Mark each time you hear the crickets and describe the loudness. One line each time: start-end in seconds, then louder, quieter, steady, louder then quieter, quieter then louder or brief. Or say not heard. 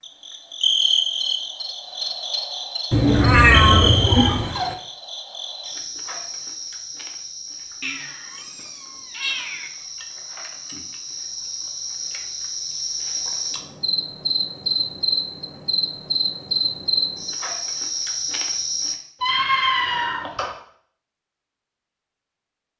0.0-18.9 quieter then louder.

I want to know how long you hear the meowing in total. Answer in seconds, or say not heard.
5 s.